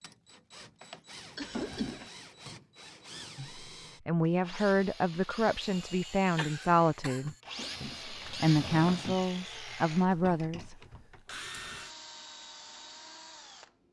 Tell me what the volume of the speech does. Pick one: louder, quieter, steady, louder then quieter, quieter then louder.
steady.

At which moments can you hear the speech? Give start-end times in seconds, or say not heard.
3.4-10.8.